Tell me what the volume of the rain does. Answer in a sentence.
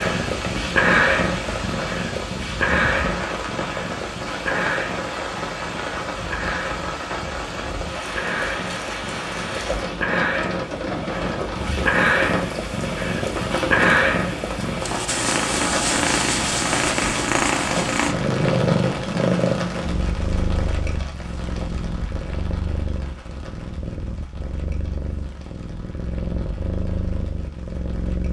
The volume of the rain goes down.